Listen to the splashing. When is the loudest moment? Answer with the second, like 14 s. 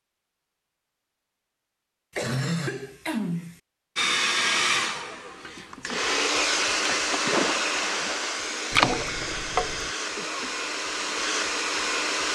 9 s.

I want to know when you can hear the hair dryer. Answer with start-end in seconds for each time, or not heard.
4.0-12.3.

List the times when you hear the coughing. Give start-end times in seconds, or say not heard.
2.1-3.6, 10.2-10.6.